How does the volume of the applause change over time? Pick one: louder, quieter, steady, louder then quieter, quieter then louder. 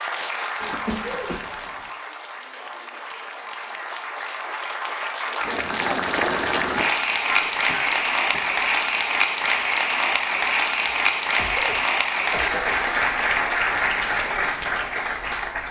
louder.